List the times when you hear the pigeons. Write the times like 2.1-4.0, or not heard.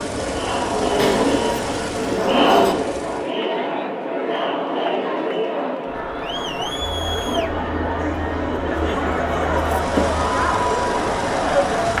0.7-2.8, 7.2-8.9.